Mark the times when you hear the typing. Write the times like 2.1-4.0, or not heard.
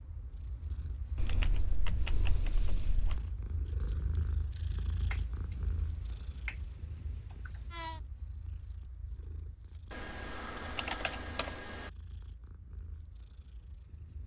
1.1-3.2, 5.1-5.8, 6.5-7.5, 9.9-11.9.